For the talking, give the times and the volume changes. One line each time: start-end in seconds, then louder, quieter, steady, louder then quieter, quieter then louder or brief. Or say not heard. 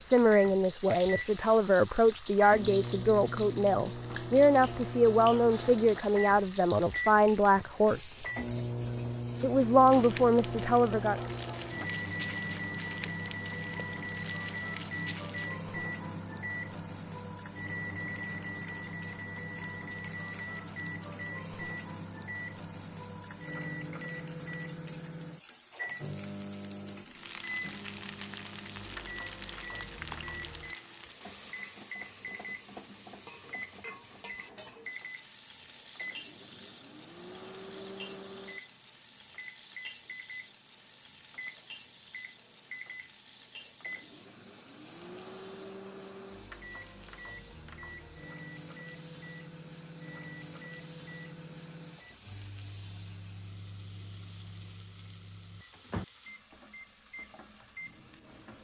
0.0-8.2 steady
9.4-11.2 brief.